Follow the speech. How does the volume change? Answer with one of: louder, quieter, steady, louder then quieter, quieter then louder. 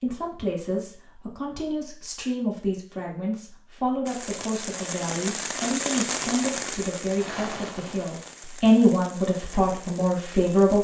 louder.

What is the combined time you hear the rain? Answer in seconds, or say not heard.
7 s.